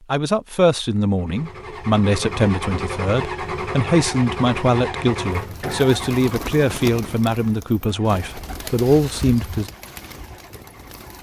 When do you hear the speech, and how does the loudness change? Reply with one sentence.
The speech can be heard from 0.1 to 9.7 s, at a steady volume.